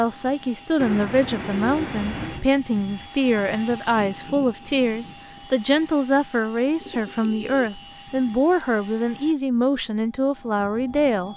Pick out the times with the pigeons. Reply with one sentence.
The pigeons can be heard from 0.8 to 2.5 s and from 6.7 to 7.8 s.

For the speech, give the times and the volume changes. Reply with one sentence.
The speech can be heard from 0.0 to 11.3 s, at a steady volume.